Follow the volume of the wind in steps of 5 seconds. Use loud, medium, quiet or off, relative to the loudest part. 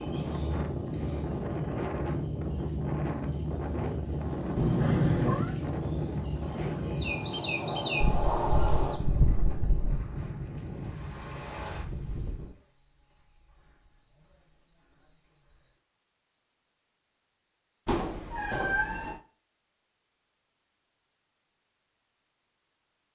loud, loud, medium, off, off.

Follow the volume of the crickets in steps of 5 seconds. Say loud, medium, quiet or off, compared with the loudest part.
medium, loud, medium, medium, off.